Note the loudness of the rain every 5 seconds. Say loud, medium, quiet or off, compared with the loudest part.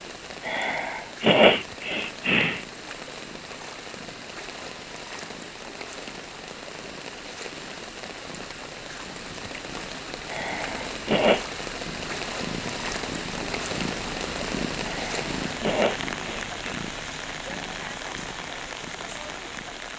medium, medium, loud, loud.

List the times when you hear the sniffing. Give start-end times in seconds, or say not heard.
0.5-2.6, 10.2-11.4, 14.8-16.8.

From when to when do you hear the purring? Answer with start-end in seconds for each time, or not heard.
0.0-19.9.